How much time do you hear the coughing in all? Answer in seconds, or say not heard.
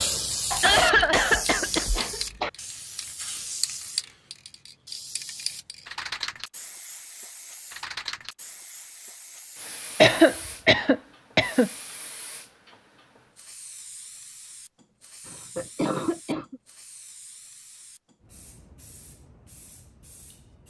5 s.